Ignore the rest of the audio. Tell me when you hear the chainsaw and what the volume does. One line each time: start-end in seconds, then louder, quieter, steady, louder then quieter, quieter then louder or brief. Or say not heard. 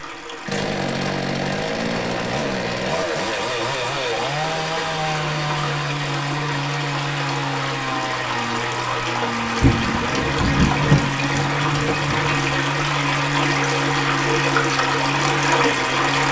0.0-16.2 steady.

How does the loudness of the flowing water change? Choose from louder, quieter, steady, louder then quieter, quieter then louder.
louder.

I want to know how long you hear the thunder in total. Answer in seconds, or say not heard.
3 s.